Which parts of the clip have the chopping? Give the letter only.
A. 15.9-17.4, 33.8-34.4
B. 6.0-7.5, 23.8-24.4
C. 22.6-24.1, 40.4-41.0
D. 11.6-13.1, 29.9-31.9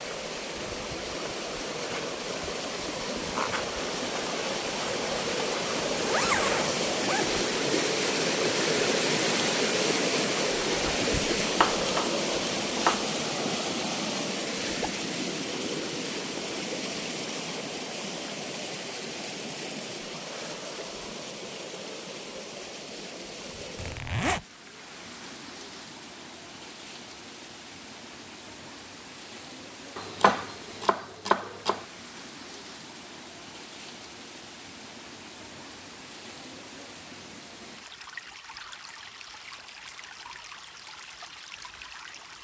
D.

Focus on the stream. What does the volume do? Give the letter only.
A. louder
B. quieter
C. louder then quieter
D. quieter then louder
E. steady
B.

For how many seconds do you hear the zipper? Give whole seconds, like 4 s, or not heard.
2 s.